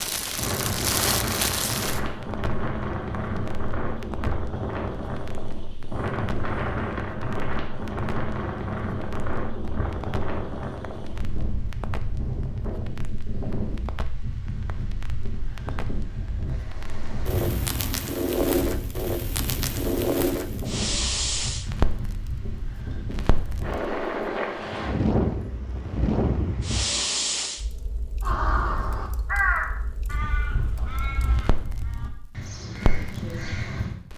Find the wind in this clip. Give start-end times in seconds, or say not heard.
0.1-26.9.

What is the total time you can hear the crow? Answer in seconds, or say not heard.
6 s.